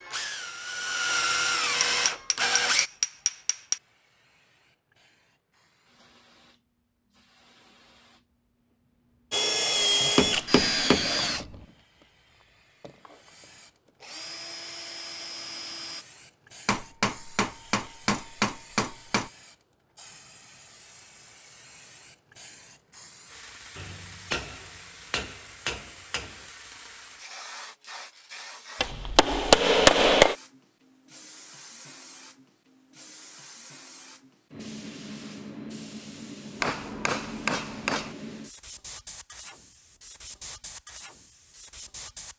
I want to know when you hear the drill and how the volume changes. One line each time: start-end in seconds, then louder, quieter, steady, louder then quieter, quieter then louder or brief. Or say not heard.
0.0-2.9 brief
9.3-16.1 quieter then louder.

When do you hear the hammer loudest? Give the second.
30 s.